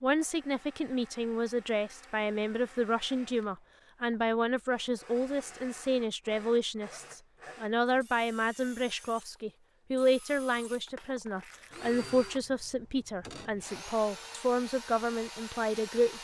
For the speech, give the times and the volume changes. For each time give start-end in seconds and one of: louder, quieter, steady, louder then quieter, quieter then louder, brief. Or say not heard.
0.0-16.1 steady.